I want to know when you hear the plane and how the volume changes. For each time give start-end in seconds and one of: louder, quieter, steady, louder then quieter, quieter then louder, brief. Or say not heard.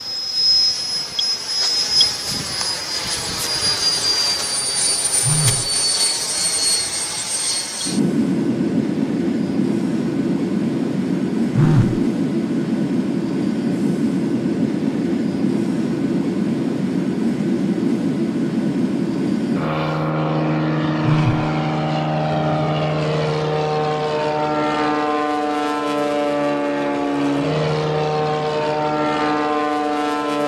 0.0-30.4 steady.